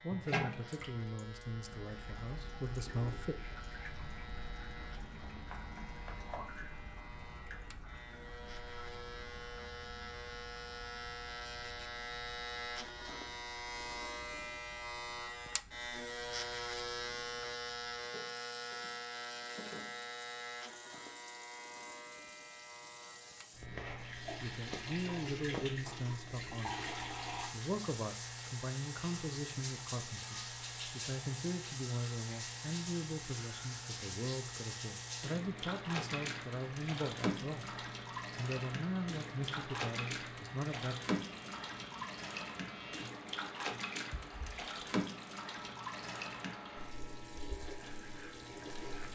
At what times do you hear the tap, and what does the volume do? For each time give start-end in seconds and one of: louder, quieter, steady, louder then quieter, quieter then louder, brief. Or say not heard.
0.1-49.1 quieter then louder.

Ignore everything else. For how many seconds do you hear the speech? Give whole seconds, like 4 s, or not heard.
20 s.